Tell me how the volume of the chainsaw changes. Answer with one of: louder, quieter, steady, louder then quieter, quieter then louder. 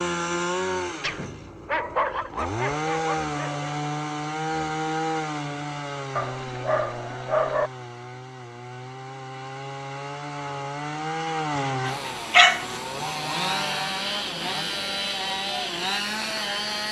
quieter then louder.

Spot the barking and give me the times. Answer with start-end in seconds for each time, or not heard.
1.0-3.7, 6.2-7.7, 11.6-12.8.